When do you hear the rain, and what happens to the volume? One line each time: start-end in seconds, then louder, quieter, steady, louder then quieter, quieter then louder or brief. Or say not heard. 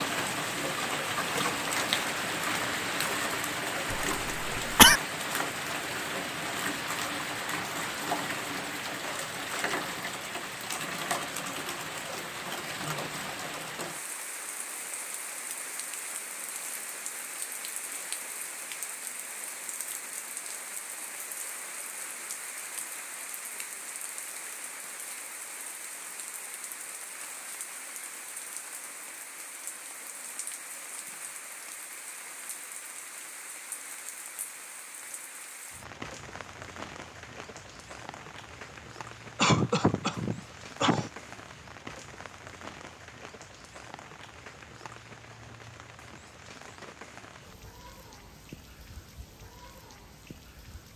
0.0-50.9 quieter.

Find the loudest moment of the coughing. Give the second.
5 s.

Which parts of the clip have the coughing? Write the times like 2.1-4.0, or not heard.
3.9-5.0, 39.4-41.1.